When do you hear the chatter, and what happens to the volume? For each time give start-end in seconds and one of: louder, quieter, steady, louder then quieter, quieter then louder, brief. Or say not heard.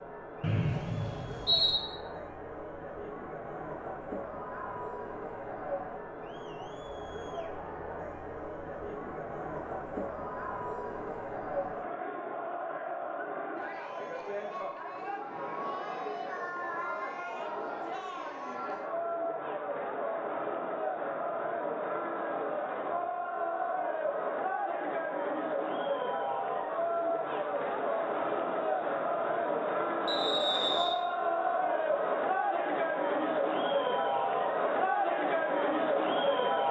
0.0-36.6 louder.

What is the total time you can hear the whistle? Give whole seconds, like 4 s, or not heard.
2 s.